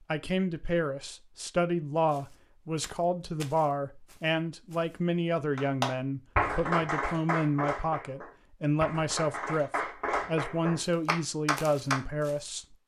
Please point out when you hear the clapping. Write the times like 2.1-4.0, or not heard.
5.5-12.0.